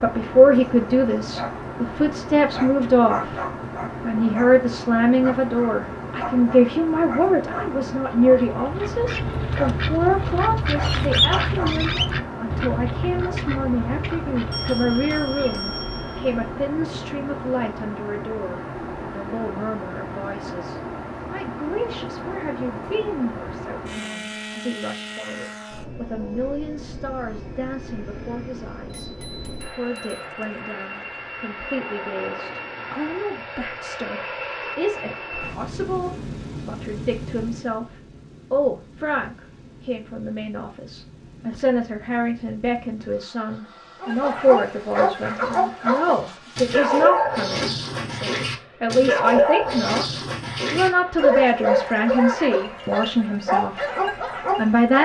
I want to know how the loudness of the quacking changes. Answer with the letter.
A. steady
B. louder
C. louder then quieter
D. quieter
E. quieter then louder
C.